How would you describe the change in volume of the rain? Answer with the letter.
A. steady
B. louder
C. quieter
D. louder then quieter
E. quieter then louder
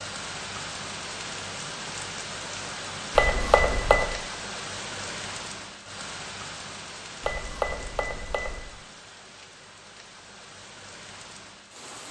C.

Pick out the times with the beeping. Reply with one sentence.
The beeping can be heard from 3.1 to 4.1 s and from 7.2 to 8.7 s.